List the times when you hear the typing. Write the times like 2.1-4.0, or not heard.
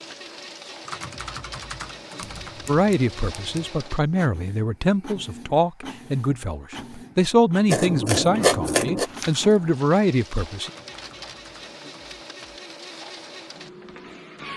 0.8-2.8, 10.6-12.6.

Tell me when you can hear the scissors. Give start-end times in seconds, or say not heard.
2.2-3.6, 7.7-9.1.